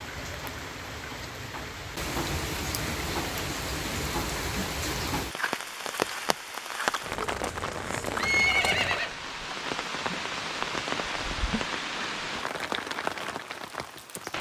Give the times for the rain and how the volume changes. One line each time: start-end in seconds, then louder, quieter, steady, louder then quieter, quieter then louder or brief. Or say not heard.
0.0-14.3 steady.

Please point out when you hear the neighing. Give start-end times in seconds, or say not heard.
6.8-9.1.